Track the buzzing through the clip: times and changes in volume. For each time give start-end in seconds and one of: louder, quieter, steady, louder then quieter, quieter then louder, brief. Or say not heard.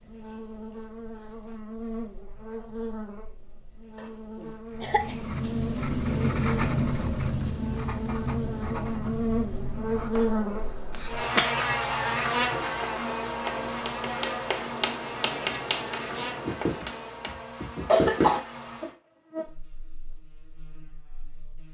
0.0-21.6 louder then quieter.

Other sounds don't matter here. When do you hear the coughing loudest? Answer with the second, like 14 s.
18 s.